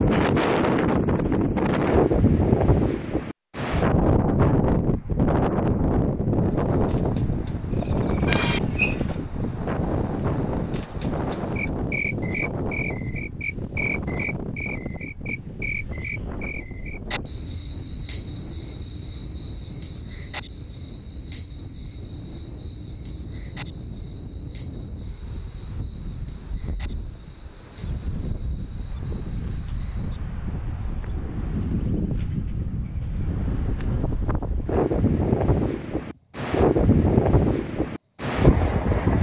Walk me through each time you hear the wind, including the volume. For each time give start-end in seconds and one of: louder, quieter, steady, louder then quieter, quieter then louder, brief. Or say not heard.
0.0-39.1 quieter then louder.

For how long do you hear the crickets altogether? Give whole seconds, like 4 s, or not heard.
33 s.